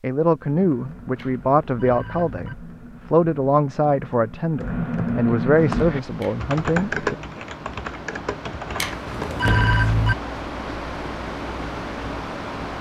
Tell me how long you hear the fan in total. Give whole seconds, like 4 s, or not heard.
7 s.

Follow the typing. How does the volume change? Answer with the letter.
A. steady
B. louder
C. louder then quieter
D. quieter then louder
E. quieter
C.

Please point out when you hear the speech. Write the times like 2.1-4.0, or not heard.
0.0-7.2.